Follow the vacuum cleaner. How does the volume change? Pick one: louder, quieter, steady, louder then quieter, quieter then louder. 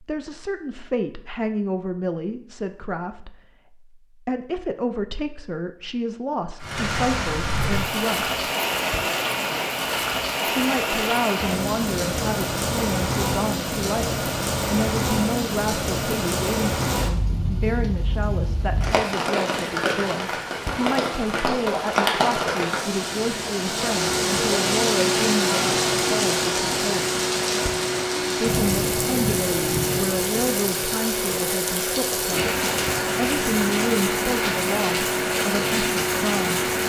steady.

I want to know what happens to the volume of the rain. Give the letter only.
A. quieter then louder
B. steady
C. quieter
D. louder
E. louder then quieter
B.